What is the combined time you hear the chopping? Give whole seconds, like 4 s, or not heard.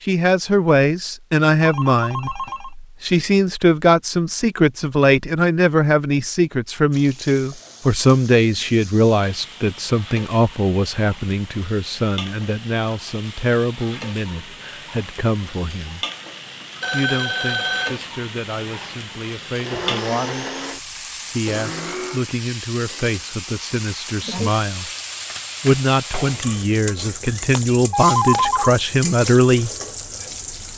not heard.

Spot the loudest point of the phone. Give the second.
28 s.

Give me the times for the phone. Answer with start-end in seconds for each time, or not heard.
1.6-2.7, 16.8-17.9, 27.2-28.8.